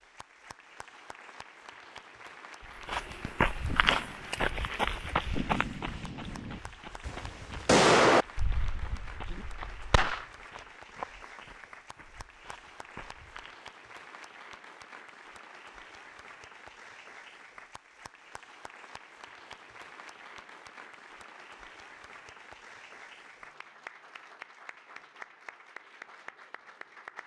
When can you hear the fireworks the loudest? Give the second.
8 s.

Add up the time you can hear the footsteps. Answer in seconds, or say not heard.
11 s.